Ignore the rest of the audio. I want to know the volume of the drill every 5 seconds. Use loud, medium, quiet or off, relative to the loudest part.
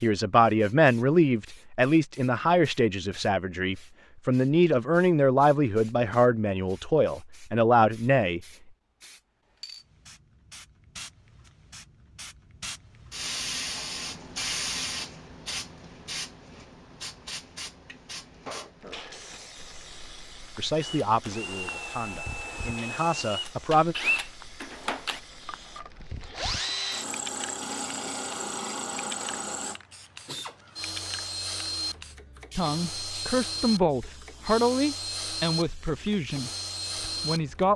off, off, off, off, loud, loud, loud, loud.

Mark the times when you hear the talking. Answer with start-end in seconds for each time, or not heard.
0.0-8.4, 20.6-23.9, 32.5-37.7.